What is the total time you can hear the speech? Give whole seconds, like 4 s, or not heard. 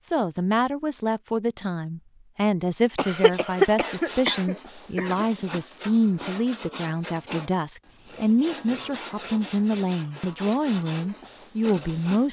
12 s.